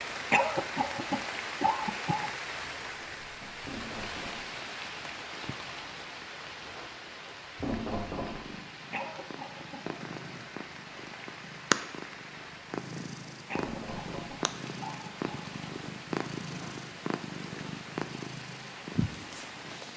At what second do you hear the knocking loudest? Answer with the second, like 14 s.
8 s.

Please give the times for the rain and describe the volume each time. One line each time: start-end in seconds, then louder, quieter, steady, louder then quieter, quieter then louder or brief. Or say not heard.
0.0-19.9 quieter.